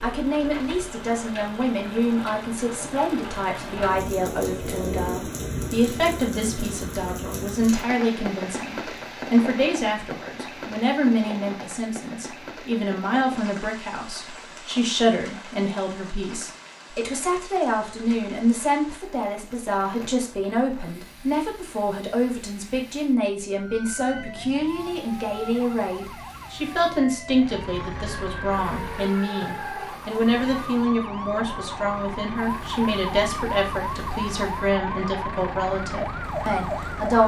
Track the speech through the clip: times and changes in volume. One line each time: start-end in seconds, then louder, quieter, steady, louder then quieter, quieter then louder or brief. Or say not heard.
0.0-37.2 steady.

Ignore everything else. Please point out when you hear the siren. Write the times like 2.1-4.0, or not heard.
23.5-37.2.